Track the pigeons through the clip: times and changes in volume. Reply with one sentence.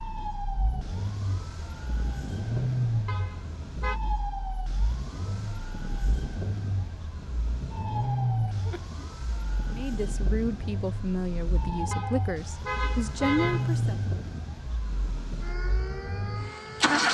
The pigeons can't be heard in this clip.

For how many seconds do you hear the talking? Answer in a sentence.
You can hear the talking for 4 seconds altogether.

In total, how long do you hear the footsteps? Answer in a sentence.
You can't hear the footsteps here.